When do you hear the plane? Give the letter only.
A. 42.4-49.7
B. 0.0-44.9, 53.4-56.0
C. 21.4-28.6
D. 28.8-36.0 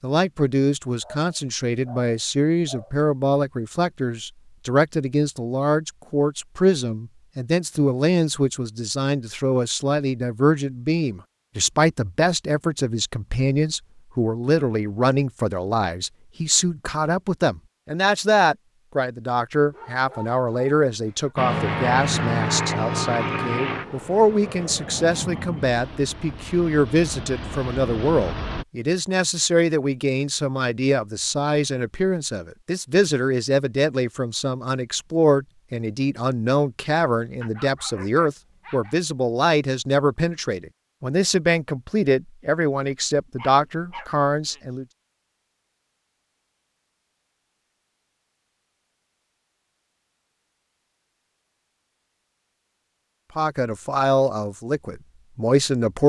C.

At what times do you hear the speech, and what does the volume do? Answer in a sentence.
The speech can be heard from 0.0 to 44.9 s, at a steady volume; and briefly from 53.4 to 56.0 s.